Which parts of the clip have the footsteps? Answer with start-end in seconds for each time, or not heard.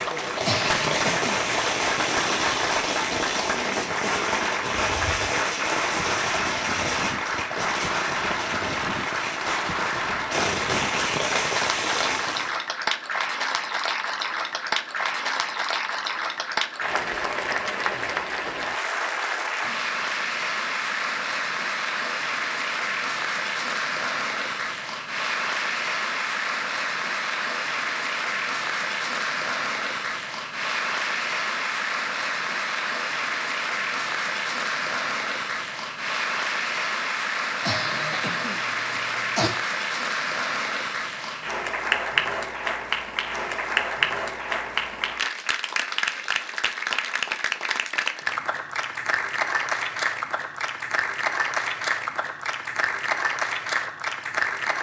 not heard.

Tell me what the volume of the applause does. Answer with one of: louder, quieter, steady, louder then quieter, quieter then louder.
steady.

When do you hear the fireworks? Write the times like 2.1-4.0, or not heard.
0.1-12.6.